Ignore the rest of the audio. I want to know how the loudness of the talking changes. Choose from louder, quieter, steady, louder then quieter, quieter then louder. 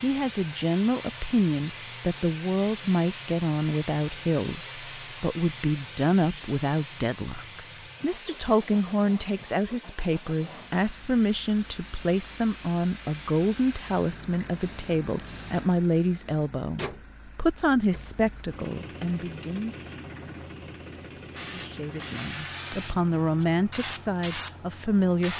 steady.